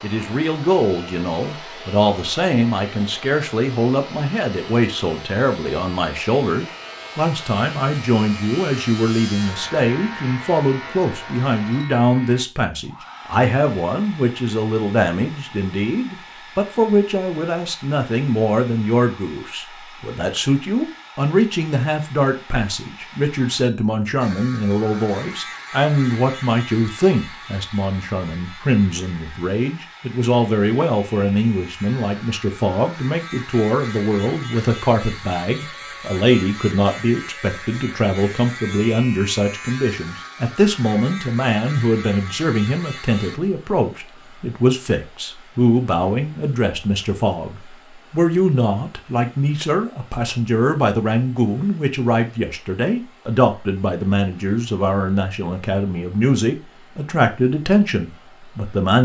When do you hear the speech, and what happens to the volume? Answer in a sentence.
You can hear the speech from 0.0 to 58.9 s, at a steady volume.